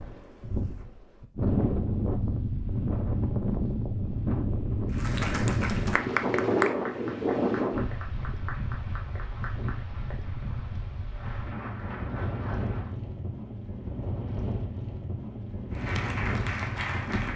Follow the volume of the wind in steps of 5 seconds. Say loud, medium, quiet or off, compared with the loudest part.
loud, loud, medium, medium.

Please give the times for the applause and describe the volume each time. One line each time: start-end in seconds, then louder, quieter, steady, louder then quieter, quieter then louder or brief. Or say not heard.
4.9-12.9 quieter then louder
15.7-17.3 brief.